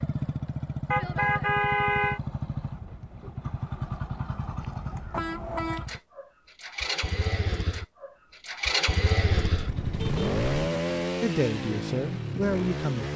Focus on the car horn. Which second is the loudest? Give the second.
2 s.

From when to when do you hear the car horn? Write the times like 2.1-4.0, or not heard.
0.9-2.2, 5.1-5.8, 9.4-10.8.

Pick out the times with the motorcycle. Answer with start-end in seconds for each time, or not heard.
0.0-13.1.